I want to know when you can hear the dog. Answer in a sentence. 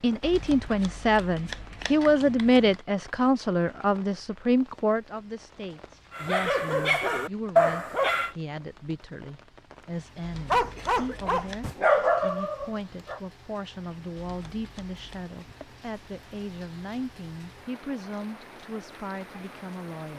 The dog can be heard from 6.2 to 8.3 s and from 10.5 to 13.2 s.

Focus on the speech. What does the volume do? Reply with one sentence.
The volume of the speech goes down.